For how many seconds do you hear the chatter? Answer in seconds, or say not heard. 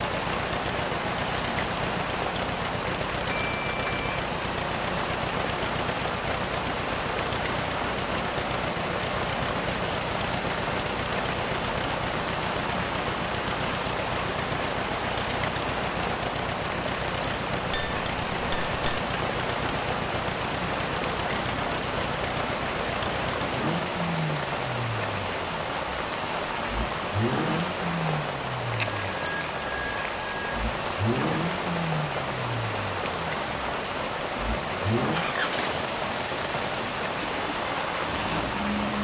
not heard.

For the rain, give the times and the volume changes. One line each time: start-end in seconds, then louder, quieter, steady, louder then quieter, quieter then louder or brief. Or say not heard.
0.0-38.9 steady.